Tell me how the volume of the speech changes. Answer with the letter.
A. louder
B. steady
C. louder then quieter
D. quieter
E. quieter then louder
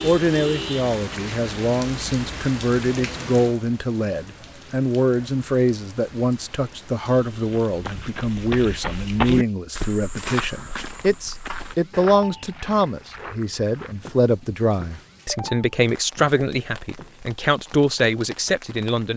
B.